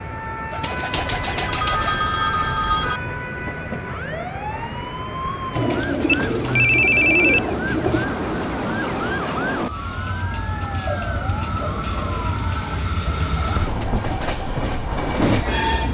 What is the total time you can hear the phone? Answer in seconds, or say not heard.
4 s.